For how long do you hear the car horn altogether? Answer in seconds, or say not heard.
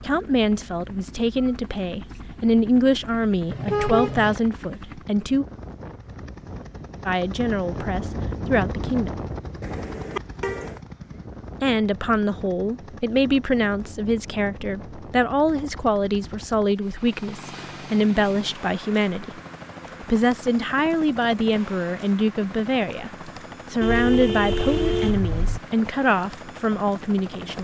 4 s.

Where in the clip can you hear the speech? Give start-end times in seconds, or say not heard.
0.0-5.5, 7.0-9.1, 11.6-19.4, 20.0-27.5.